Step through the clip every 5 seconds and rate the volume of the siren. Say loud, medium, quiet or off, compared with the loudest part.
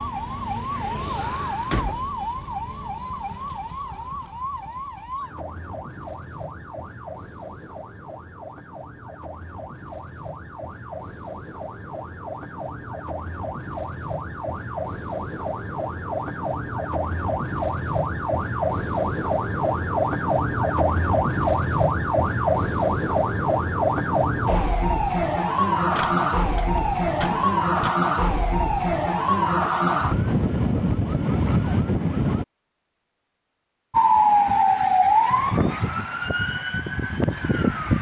medium, quiet, quiet, medium, loud, loud, loud, loud.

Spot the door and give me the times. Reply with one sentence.
You can hear the door from 1.1 to 2.1 s and from 25.9 to 27.9 s.